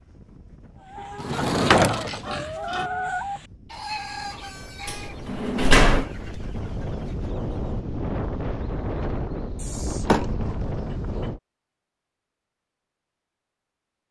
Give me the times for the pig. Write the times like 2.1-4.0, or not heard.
1.9-2.9, 9.6-11.3.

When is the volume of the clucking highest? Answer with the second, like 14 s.
3 s.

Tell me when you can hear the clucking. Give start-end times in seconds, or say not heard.
0.8-8.0.